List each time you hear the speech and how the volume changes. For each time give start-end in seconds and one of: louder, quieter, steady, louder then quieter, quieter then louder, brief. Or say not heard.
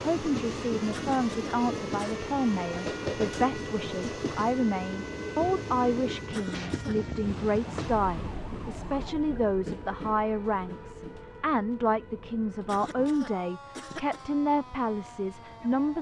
0.0-15.9 steady.